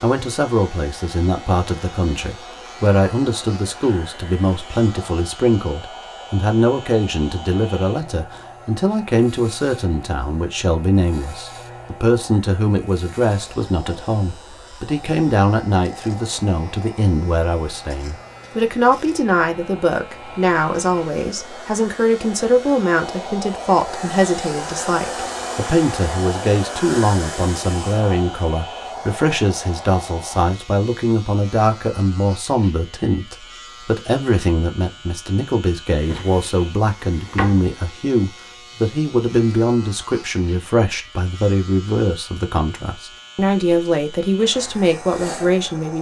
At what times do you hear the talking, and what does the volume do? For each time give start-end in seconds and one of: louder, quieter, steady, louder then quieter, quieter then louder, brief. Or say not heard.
0.0-45.9 steady.